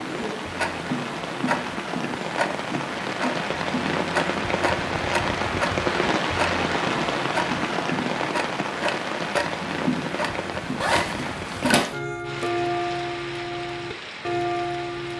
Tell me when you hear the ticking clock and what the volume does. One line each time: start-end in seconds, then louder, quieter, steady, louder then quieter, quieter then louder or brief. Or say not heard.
0.0-15.1 steady.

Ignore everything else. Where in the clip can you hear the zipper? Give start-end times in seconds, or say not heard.
10.8-11.9.